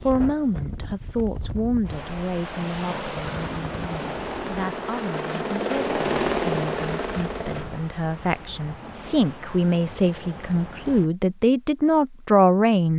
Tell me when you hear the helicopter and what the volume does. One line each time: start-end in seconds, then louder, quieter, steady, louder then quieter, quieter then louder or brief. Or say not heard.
3.2-7.8 louder then quieter.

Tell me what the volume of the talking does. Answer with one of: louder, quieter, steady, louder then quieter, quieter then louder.
quieter then louder.